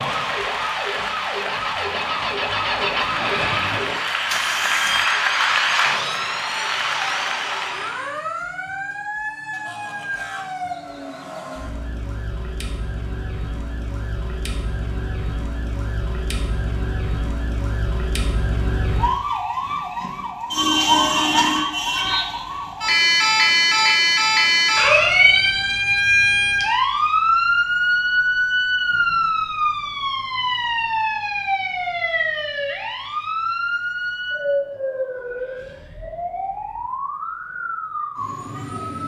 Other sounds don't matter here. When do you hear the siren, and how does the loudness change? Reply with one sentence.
You can hear the siren from 0.0 to 39.0 s, getting louder then quieter.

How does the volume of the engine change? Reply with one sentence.
The volume of the engine goes up, then down.